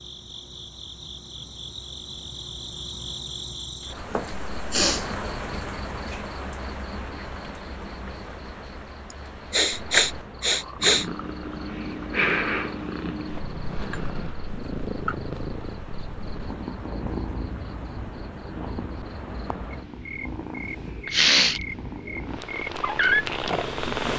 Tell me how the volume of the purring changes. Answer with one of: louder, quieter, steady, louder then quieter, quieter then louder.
quieter then louder.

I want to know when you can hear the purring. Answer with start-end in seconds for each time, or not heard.
10.8-24.1.